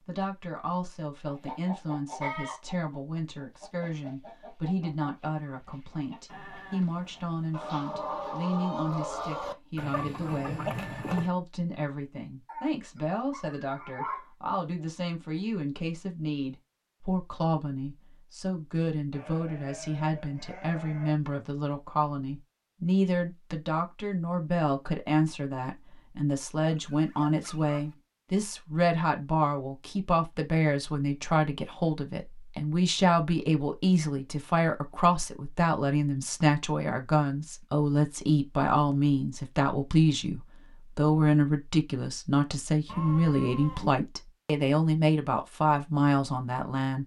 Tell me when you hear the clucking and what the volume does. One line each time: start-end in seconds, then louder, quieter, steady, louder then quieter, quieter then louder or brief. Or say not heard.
1.2-11.3 quieter then louder.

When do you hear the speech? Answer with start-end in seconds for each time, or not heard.
0.1-47.0.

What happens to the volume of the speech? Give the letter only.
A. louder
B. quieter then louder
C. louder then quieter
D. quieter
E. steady
A.